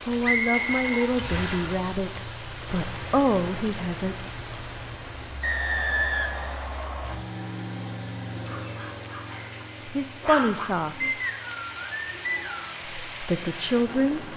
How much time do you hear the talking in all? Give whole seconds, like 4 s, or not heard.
7 s.